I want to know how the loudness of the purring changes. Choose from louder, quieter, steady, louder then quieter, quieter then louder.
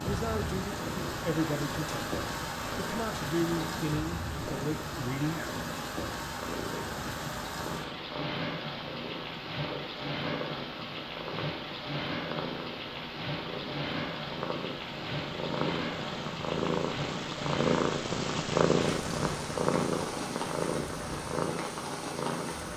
louder.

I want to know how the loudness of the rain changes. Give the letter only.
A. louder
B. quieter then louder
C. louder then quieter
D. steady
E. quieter
D.